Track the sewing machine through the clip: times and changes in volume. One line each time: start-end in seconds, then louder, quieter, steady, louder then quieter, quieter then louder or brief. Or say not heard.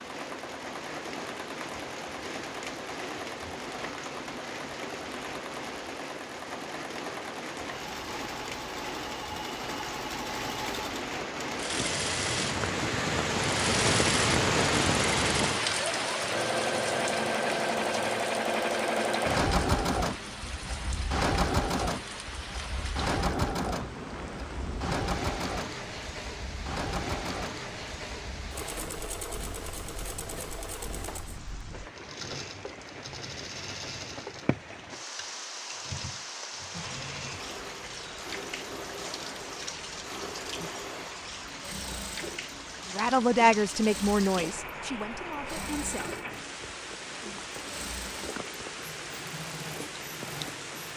0.0-50.9 louder then quieter.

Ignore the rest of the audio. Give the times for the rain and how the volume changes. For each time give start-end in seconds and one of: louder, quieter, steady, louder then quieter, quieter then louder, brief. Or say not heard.
0.0-50.9 louder then quieter.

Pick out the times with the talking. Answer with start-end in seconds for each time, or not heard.
42.9-46.0.